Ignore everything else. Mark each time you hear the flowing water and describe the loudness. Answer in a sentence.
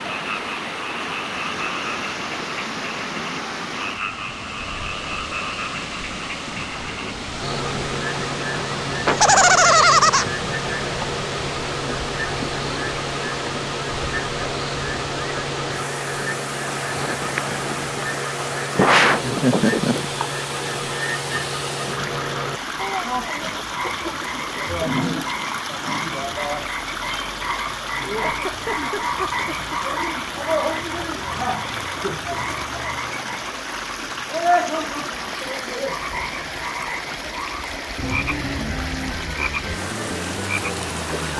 The flowing water can be heard from 0.0 to 41.3 s, at a steady volume.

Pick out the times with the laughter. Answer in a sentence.
The laughter can be heard from 9.1 to 10.2 s, from 18.8 to 20.1 s and from 28.1 to 29.8 s.